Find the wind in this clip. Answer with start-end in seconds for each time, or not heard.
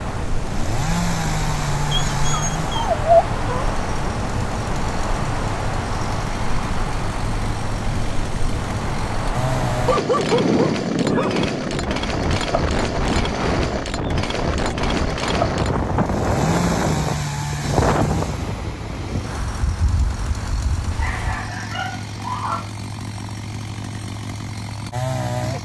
0.0-21.4.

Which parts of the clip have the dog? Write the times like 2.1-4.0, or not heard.
1.9-3.7, 9.8-11.8, 20.9-22.7.